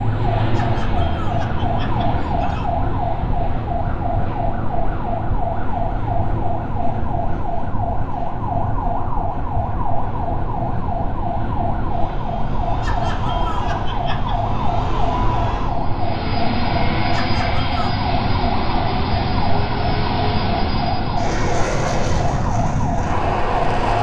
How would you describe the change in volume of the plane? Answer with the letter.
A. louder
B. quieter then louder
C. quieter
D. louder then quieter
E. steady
B.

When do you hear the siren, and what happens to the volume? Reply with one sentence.
You can hear the siren from 0.0 to 23.9 s, at a steady volume.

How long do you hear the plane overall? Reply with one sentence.
The plane can be heard for 24 seconds in total.